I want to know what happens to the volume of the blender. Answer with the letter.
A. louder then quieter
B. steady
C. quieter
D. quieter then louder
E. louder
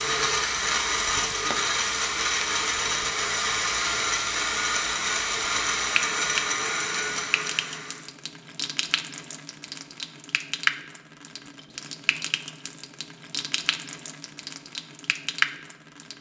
B.